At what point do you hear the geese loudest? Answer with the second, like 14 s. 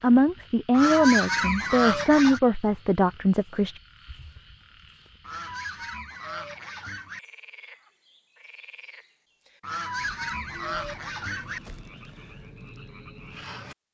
1 s.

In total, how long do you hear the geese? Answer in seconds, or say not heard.
6 s.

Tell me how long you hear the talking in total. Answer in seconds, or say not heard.
4 s.